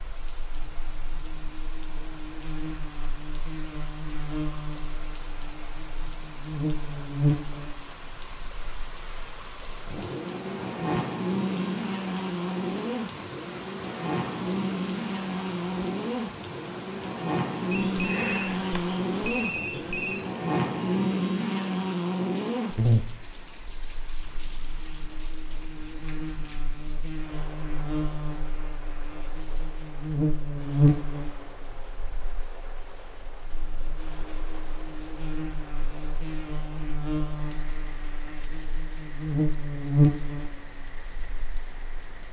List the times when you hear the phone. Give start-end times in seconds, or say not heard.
17.7-20.2.